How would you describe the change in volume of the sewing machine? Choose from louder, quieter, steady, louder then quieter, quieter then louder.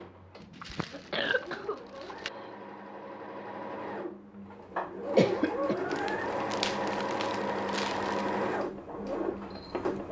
louder.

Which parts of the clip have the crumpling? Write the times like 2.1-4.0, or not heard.
0.4-2.3, 5.9-8.3.